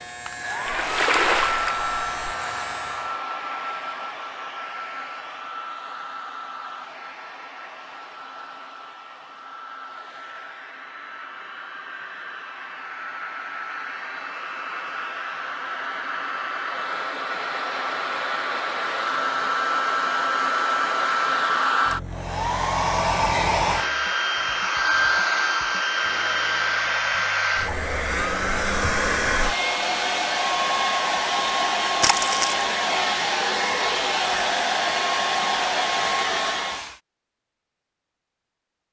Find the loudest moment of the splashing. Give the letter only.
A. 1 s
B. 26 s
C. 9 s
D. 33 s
A.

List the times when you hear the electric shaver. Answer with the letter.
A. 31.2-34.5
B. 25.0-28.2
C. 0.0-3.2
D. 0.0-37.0
C.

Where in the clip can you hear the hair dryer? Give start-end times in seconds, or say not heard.
0.0-37.0.